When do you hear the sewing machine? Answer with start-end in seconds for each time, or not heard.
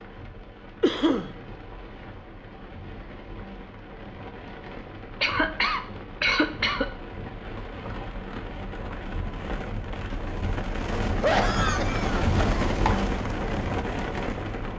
not heard.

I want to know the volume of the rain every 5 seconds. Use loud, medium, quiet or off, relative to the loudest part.
quiet, medium, loud.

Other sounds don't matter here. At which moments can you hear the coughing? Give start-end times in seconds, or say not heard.
0.8-1.3, 5.2-6.9, 11.2-13.1.